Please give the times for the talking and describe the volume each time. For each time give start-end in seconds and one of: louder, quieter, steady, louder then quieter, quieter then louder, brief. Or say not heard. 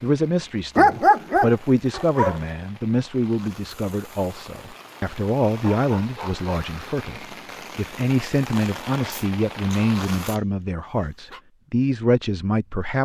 0.0-12.9 steady.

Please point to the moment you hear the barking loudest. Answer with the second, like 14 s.
1 s.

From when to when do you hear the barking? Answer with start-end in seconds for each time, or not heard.
0.8-2.4, 5.6-6.5, 9.1-11.4.